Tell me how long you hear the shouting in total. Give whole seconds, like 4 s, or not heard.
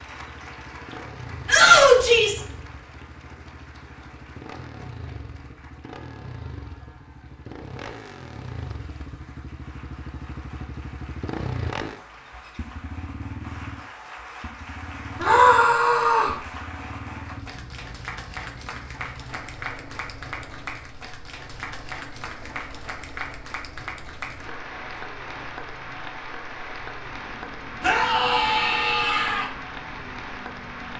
4 s.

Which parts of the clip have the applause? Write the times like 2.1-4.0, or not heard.
0.0-30.9.